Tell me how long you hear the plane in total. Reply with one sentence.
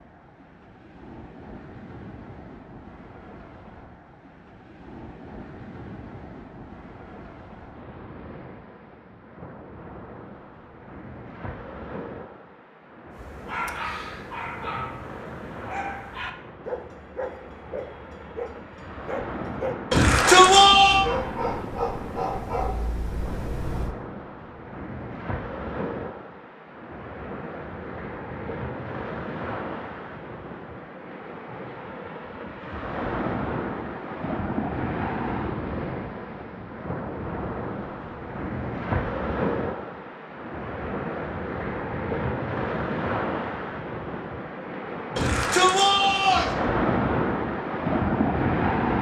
The plane can't be heard in this clip.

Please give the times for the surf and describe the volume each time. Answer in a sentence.
You can hear the surf from 0.0 to 48.9 s, getting louder.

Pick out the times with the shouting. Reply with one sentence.
The shouting can be heard from 19.9 to 21.1 s and from 45.1 to 46.5 s.